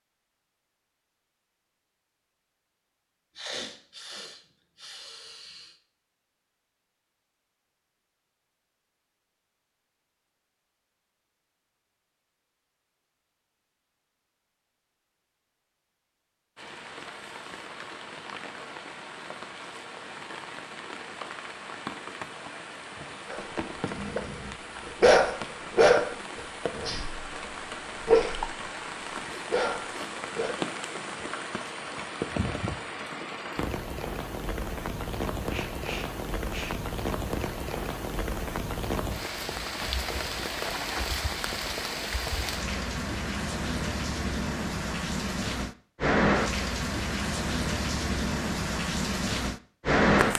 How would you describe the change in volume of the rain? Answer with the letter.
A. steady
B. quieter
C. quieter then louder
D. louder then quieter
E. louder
E.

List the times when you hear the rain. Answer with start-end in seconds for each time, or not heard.
16.6-50.3.